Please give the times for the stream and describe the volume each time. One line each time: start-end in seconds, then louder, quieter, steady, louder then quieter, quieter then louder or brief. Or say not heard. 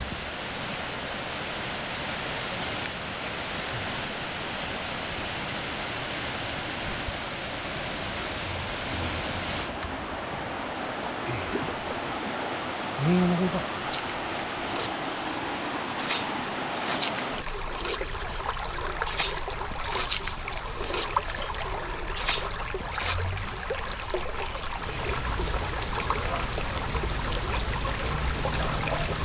0.0-29.1 steady.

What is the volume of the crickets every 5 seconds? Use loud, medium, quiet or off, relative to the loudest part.
quiet, quiet, medium, medium, loud, loud.